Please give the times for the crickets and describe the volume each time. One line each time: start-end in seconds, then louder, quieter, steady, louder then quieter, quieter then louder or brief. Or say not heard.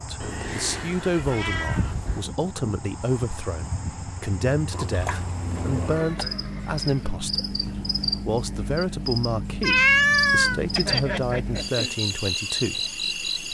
0.0-13.5 louder.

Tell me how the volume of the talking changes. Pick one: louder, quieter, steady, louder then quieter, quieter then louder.
steady.